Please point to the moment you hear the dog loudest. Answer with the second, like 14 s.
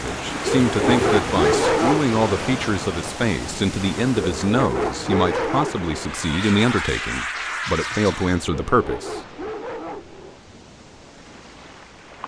2 s.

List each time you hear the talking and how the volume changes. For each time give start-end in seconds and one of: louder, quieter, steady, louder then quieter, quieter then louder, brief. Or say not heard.
0.0-9.2 steady.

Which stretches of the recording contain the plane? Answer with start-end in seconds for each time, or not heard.
5.9-8.4.